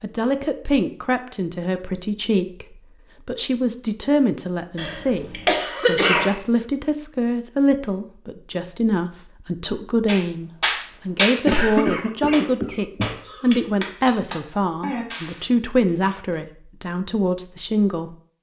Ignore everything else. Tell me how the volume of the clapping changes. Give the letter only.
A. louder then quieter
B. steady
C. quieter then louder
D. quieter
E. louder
D.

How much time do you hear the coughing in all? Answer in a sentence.
You can hear the coughing for 4 seconds altogether.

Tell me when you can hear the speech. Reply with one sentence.
You can hear the speech from 0.0 to 18.1 s.